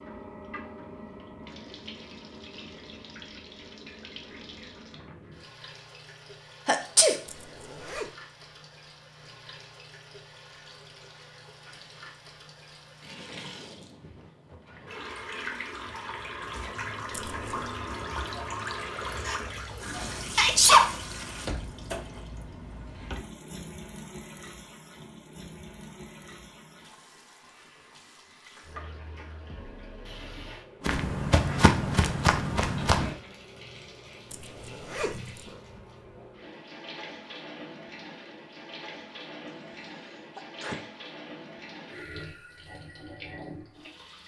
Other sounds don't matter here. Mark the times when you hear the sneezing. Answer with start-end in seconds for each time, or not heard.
6.7-7.2, 19.9-20.9, 40.4-40.9.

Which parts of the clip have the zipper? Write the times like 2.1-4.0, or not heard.
7.2-8.2, 17.1-17.8, 34.3-35.6.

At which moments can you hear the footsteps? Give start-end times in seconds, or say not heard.
30.8-33.1.